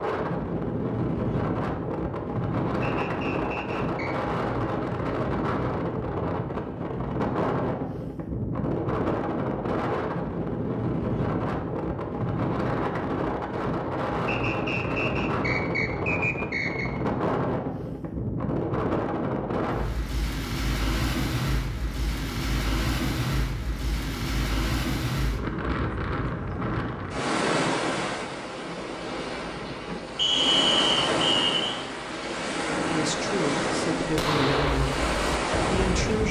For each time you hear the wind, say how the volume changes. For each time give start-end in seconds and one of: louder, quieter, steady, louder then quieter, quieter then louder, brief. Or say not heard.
0.0-36.2 steady.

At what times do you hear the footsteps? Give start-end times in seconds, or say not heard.
not heard.